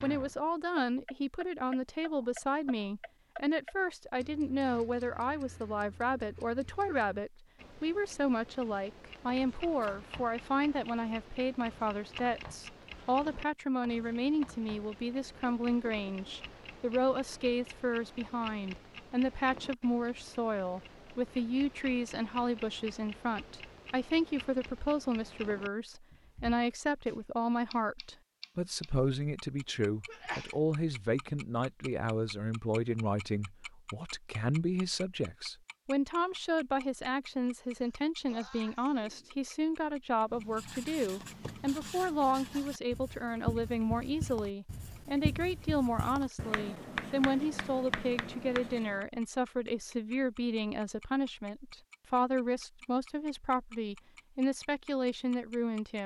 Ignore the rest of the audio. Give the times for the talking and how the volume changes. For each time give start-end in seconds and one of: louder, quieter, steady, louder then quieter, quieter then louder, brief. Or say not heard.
0.0-56.0 steady.